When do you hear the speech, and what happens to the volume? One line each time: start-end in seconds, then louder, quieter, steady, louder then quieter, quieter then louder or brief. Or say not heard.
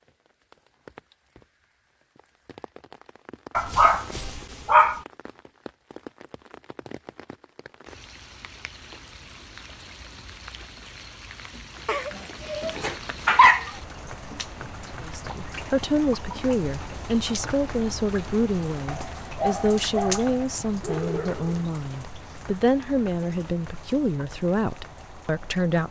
15.0-25.8 steady.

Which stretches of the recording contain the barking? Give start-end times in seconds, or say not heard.
3.5-5.0, 11.8-13.7, 18.9-21.6.